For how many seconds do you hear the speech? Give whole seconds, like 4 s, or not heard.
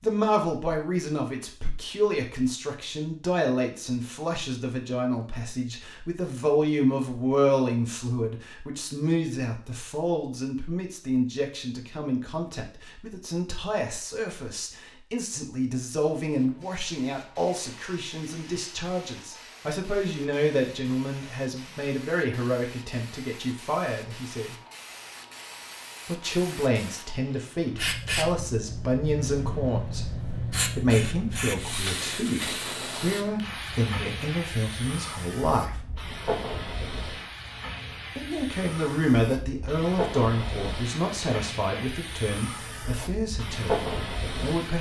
40 s.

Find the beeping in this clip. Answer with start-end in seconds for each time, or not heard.
not heard.